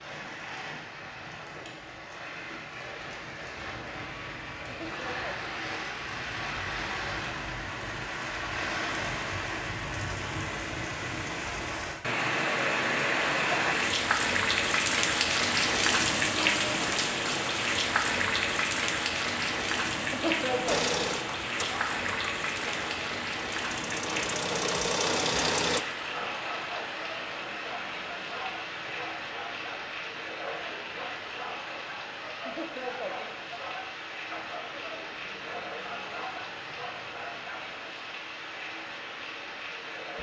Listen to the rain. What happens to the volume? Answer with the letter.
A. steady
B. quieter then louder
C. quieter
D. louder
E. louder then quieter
E.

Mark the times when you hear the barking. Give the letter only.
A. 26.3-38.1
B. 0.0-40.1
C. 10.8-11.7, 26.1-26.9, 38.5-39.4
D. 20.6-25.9
A.